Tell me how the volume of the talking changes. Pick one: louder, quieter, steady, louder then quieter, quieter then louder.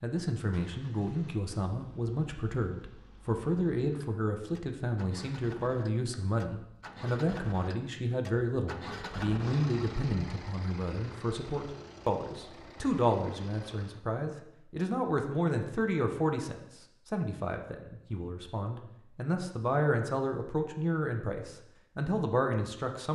steady.